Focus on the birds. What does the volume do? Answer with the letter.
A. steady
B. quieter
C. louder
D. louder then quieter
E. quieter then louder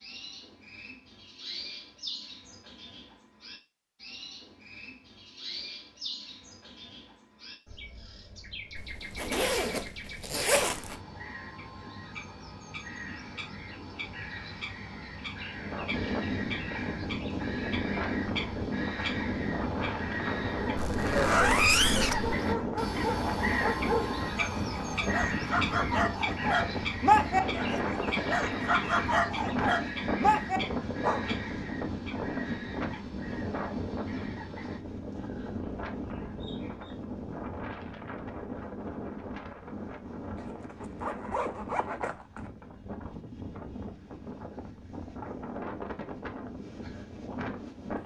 D.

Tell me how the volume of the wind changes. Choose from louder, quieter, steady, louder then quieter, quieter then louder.
quieter.